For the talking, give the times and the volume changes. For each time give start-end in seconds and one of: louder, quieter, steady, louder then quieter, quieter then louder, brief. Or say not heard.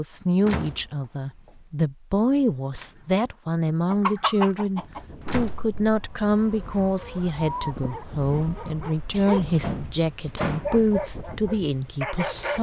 0.0-12.5 steady.